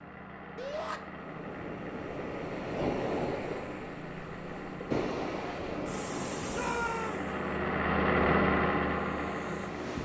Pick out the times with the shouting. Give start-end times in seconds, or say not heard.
0.6-1.0, 6.5-7.3.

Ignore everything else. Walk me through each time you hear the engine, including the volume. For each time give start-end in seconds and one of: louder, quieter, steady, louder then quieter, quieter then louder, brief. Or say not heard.
0.0-10.0 louder.